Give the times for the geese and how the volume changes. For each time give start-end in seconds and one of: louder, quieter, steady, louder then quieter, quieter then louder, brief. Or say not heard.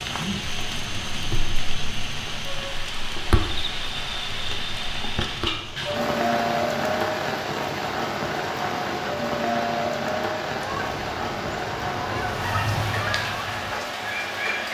10.4-14.6 louder then quieter.